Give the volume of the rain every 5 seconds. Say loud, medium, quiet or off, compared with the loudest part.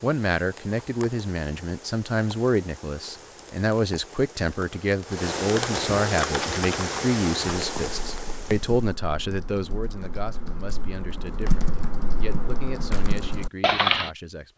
quiet, loud, off.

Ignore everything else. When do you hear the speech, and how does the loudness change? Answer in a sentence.
You can hear the speech from 0.0 to 14.5 s, getting quieter.